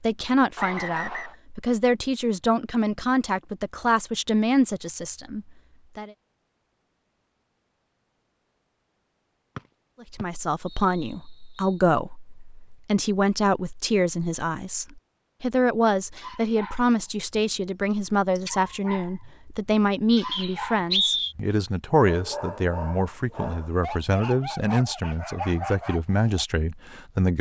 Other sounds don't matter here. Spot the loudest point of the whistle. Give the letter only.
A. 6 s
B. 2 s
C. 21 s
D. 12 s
C.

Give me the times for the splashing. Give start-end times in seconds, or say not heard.
not heard.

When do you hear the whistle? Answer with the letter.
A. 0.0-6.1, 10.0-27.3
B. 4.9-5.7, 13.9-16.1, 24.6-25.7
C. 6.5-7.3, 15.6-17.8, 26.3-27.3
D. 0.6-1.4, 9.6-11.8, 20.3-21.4
D.